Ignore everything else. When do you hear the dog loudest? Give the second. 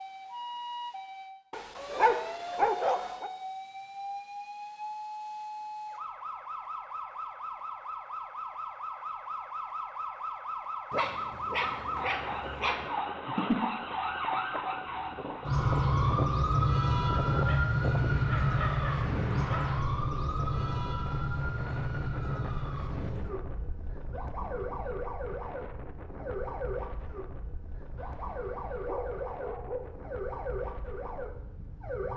3 s.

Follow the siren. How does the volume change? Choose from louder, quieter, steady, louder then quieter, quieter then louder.
louder then quieter.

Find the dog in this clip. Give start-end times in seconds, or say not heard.
1.5-3.3, 10.9-12.9, 17.3-19.7, 27.9-29.9.